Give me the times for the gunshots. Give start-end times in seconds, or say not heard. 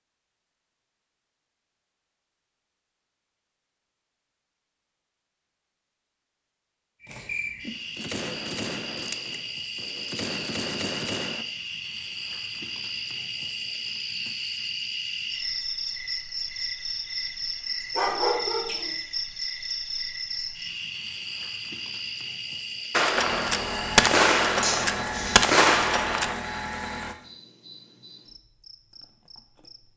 7.7-11.4, 22.9-26.4.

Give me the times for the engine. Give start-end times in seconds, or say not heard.
23.1-27.1.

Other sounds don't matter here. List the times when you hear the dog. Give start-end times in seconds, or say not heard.
17.9-18.9.